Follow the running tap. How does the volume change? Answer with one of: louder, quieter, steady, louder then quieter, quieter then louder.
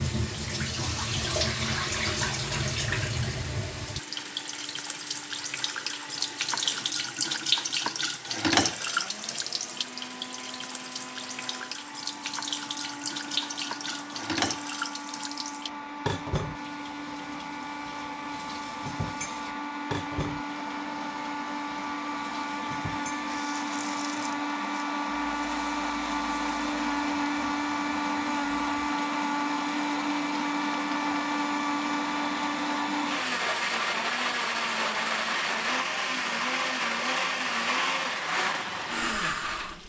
quieter.